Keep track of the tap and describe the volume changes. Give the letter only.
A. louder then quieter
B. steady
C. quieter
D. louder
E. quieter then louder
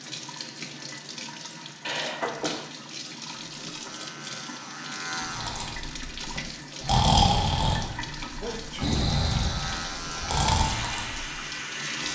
B.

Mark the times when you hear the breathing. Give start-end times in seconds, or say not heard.
5.2-11.3.